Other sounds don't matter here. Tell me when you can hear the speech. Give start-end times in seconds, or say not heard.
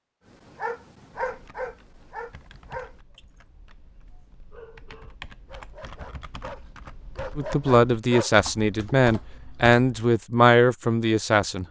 7.3-11.6.